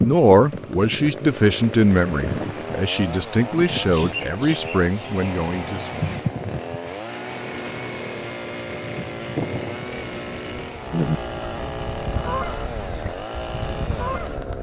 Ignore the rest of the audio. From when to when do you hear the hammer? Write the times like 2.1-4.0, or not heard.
not heard.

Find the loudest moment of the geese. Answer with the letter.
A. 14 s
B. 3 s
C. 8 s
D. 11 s
D.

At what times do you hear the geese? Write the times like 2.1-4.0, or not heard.
10.9-14.5.